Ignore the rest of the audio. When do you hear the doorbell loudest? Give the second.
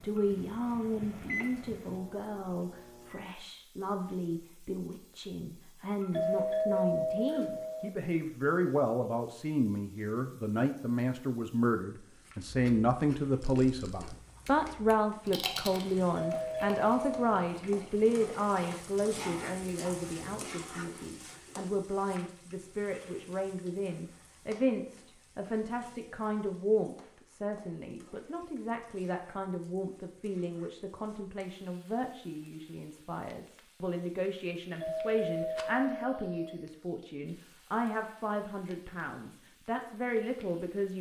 7 s.